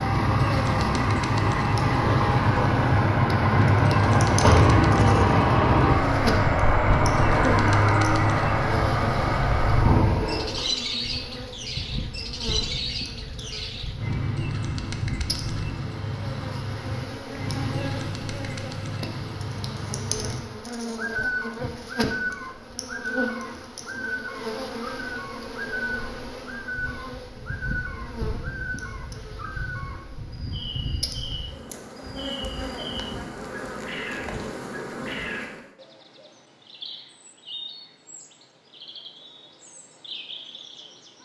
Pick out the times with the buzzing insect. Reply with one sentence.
The buzzing insect can be heard from 0.0 to 35.7 s.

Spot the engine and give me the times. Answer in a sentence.
The engine can be heard from 0.0 to 10.7 s.